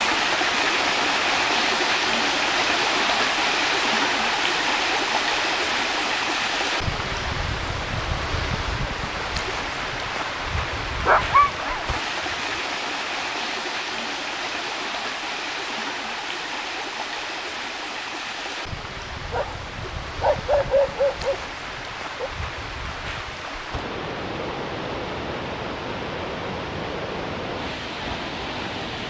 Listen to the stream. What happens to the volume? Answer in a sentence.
The volume of the stream goes down.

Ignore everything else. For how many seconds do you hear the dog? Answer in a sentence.
The dog can be heard for 4 seconds in total.